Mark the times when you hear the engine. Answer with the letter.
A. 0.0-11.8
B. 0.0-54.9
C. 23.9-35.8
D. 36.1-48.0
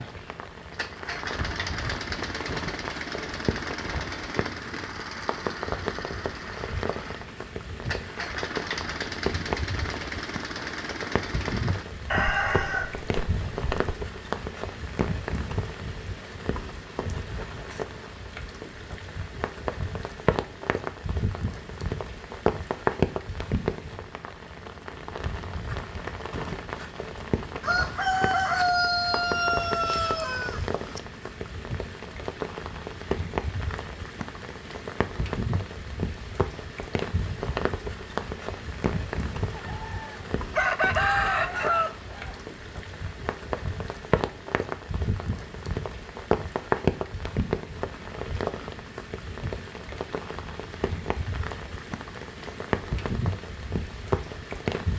A.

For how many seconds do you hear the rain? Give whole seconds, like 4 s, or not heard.
55 s.